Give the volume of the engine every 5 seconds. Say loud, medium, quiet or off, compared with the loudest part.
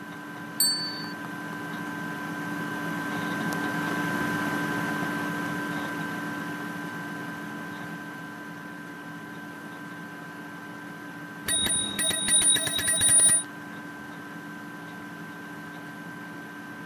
loud, loud, medium, medium.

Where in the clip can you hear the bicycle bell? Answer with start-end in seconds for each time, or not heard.
0.6-1.1, 11.4-13.4.